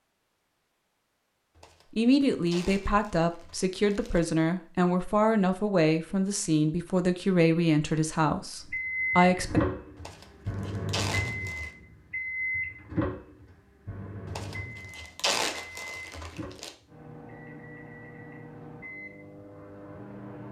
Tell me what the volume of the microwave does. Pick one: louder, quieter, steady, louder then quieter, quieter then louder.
quieter.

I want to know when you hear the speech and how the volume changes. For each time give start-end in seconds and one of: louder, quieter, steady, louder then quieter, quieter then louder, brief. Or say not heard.
1.9-9.6 steady.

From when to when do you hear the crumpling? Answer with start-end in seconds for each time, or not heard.
1.6-4.2, 9.9-11.7, 14.2-16.7.